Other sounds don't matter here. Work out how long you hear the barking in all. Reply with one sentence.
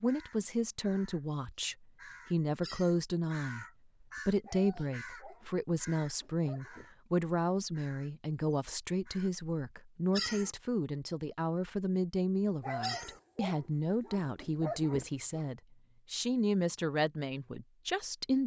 The barking can be heard for 5 seconds in total.